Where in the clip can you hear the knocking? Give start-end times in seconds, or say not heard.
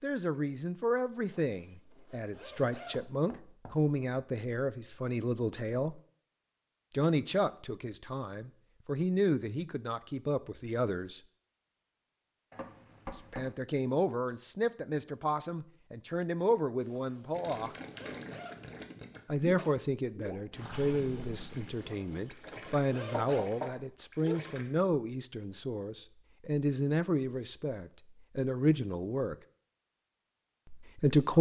2.9-3.8, 12.5-13.6, 23.2-24.4.